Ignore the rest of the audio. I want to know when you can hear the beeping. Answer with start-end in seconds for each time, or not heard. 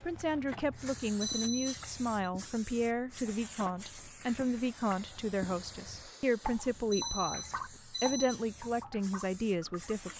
1.2-2.3, 6.9-8.4.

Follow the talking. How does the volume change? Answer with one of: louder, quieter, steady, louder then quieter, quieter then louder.
steady.